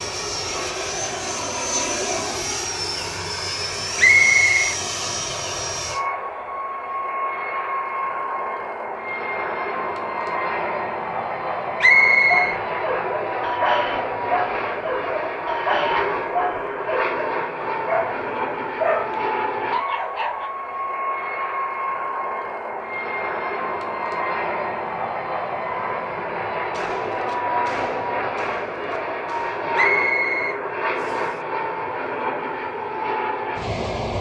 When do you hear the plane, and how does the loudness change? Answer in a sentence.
You can hear the plane from 0.0 to 34.1 s, at a steady volume.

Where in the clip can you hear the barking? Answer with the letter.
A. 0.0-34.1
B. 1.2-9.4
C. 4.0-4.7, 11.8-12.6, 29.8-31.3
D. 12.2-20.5
D.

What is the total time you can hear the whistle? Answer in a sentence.
You can hear the whistle for 3 seconds altogether.